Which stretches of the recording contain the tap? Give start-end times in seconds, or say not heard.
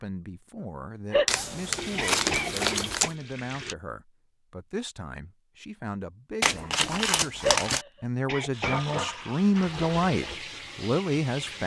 1.8-3.8, 8.5-11.6.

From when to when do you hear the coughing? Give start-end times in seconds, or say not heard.
1.1-3.1, 7.4-9.0.